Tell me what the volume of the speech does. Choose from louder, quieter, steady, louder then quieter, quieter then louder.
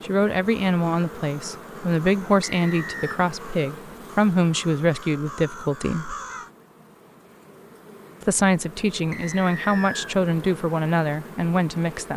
steady.